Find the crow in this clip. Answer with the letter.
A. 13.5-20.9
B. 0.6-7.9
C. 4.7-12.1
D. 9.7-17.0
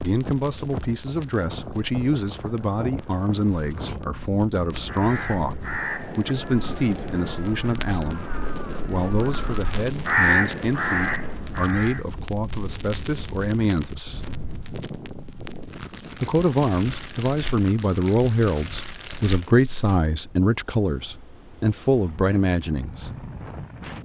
C.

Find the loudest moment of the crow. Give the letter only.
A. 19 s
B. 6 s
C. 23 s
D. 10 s
D.